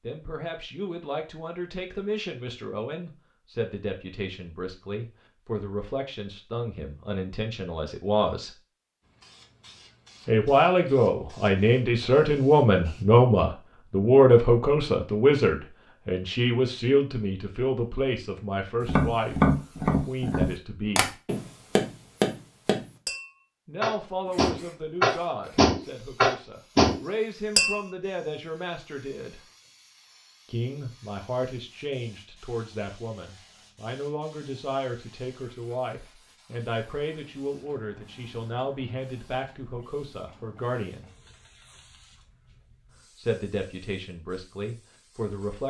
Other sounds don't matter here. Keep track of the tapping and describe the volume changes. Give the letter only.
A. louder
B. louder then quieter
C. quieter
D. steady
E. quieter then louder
E.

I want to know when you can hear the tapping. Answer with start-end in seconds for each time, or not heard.
18.8-27.9.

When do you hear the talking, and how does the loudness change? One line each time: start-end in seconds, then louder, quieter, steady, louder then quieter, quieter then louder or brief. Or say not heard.
0.0-8.6 steady
10.2-21.1 quieter
23.6-29.4 quieter then louder
30.4-41.1 steady
43.1-45.6 brief.